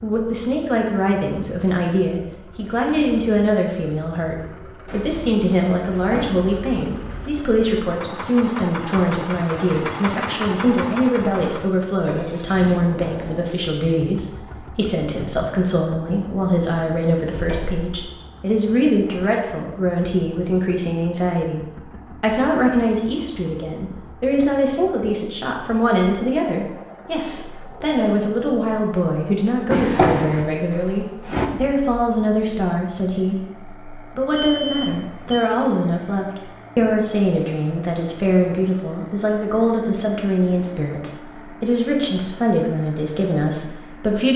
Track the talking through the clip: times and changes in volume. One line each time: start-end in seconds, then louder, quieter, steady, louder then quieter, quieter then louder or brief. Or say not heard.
0.0-44.3 steady.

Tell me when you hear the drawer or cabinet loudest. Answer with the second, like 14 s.
30 s.